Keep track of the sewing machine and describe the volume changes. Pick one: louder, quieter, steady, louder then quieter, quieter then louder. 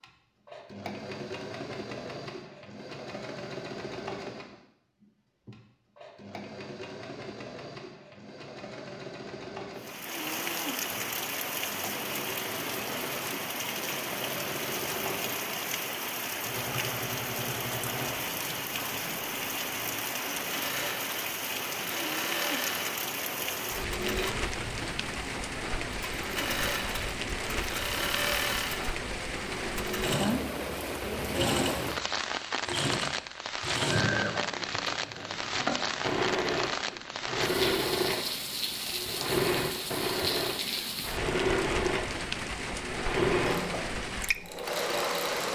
louder.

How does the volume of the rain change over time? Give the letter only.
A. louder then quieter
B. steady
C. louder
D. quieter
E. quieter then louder
B.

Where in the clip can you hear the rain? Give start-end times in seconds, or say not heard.
9.8-45.5.